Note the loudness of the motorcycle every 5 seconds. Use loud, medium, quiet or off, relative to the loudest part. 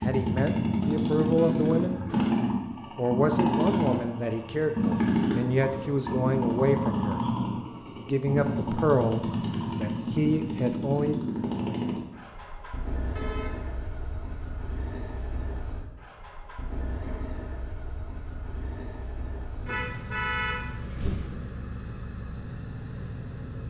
loud, loud, medium, quiet, quiet.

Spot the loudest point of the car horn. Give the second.
20 s.